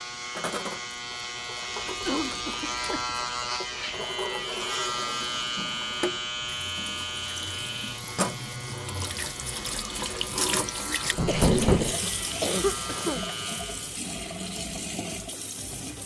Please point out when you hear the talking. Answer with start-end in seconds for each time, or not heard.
not heard.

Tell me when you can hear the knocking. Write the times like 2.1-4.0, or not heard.
11.2-11.9.